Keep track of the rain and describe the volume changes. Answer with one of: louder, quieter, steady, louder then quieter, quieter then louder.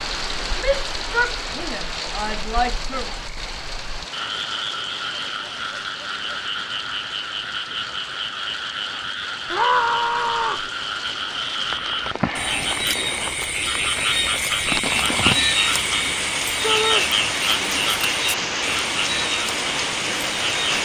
quieter then louder.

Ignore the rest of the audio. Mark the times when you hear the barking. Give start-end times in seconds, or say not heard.
not heard.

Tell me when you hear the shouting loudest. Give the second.
10 s.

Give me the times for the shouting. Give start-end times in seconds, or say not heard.
0.6-3.1, 9.5-10.7, 16.6-17.1.